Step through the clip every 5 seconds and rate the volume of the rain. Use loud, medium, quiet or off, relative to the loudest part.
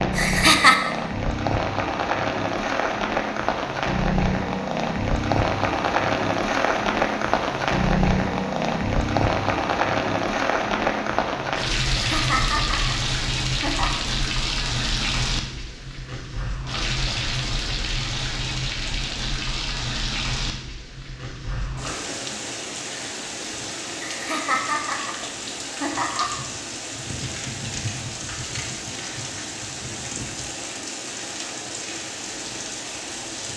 loud, loud, loud, medium, medium, medium, medium.